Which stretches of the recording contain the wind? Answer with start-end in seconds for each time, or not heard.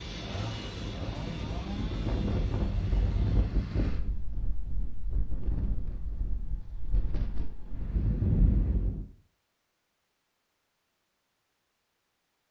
0.0-9.1.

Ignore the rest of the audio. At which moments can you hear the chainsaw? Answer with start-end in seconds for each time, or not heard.
0.0-3.5.